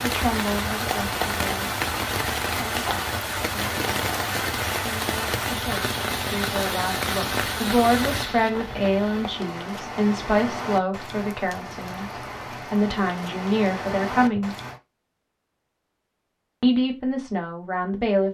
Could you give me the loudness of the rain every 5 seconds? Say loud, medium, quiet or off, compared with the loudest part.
loud, loud, medium, off.